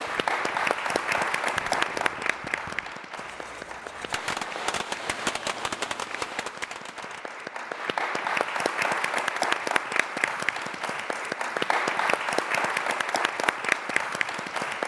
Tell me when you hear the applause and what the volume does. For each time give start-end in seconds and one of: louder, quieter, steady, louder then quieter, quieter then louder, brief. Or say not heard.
0.0-14.8 quieter then louder.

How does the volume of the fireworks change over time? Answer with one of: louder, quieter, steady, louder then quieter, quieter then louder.
louder.